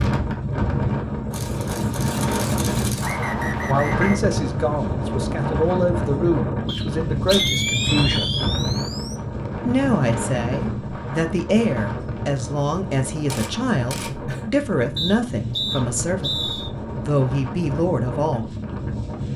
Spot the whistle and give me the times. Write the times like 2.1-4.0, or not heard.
3.0-4.2, 6.7-8.5, 14.9-16.7.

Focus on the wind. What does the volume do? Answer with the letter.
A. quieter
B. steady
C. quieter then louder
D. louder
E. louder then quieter
A.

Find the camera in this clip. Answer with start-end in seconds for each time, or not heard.
1.3-3.2, 7.3-9.2, 13.2-14.5.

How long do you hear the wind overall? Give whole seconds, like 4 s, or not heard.
19 s.